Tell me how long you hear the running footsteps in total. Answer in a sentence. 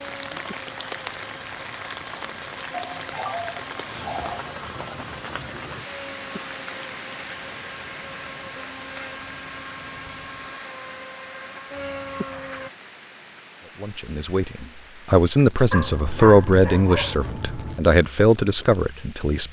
You can't hear the running footsteps here.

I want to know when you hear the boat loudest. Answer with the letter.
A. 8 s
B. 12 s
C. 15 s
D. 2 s
B.